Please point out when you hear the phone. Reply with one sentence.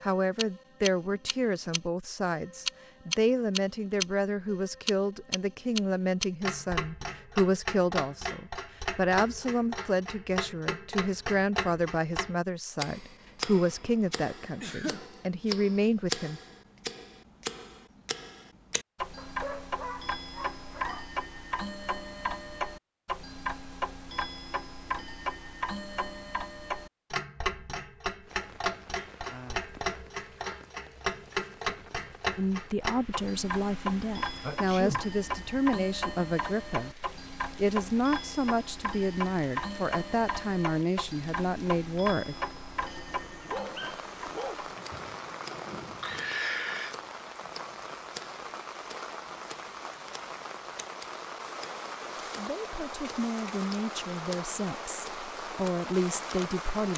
The phone can't be heard in this clip.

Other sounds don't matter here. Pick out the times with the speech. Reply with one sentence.
You can hear the speech from 0.0 to 16.4 s, from 32.4 to 42.4 s and from 52.4 to 56.9 s.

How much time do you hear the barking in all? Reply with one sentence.
The barking can be heard for 4 seconds in total.